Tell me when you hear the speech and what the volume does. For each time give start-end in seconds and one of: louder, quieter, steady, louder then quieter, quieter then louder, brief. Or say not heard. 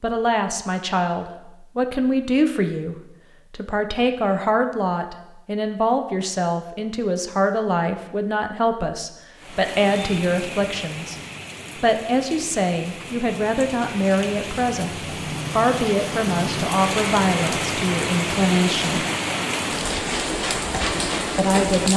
0.0-11.2 steady
11.8-19.1 steady
21.4-21.9 brief.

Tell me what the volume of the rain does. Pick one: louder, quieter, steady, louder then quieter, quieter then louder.
louder.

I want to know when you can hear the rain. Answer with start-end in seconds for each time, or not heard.
9.3-21.9.